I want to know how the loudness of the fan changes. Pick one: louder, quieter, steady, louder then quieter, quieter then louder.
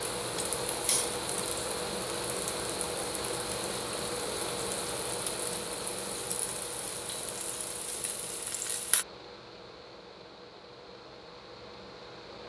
quieter.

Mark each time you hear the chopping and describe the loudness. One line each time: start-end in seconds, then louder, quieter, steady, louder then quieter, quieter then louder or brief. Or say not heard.
not heard.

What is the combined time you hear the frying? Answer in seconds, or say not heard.
9 s.